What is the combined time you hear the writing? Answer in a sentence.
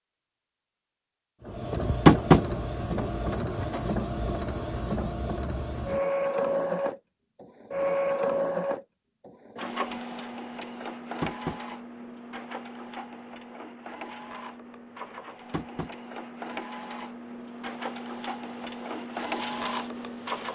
The writing can't be heard in this clip.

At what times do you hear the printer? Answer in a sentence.
You can hear the printer from 1.4 to 20.5 s.